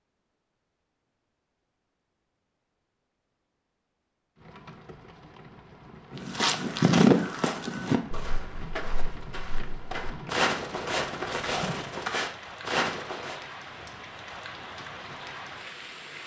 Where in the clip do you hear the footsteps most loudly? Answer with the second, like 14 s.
7 s.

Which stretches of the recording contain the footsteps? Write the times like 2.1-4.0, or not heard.
6.2-13.4.